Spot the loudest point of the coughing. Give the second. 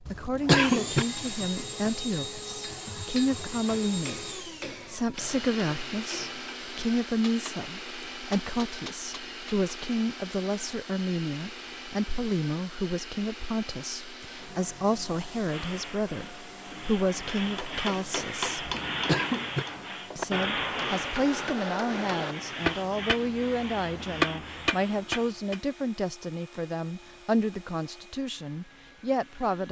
1 s.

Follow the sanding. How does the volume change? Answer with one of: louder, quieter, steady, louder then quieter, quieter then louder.
louder then quieter.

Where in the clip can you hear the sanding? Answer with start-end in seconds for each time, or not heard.
15.4-25.4.